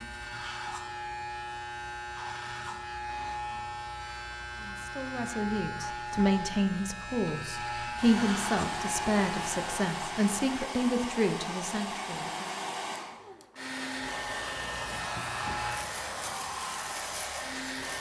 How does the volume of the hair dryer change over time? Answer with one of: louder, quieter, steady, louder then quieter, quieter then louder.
steady.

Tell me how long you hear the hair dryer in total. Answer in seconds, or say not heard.
10 s.